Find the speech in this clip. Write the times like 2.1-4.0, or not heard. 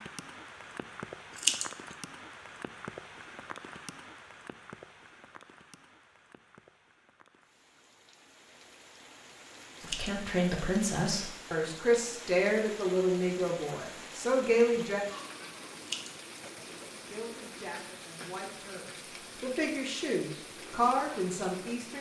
9.8-15.1, 16.5-21.9.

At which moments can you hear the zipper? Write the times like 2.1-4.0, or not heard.
not heard.